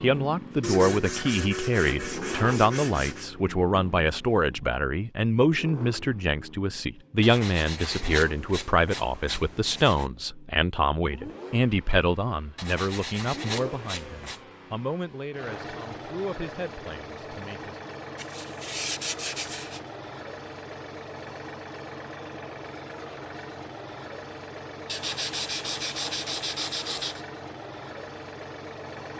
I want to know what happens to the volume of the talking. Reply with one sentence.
The volume of the talking goes down.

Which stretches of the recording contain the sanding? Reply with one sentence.
The sanding can be heard from 0.6 to 3.3 s, from 7.2 to 10.1 s, from 12.6 to 14.4 s, from 18.1 to 19.8 s and from 24.9 to 27.2 s.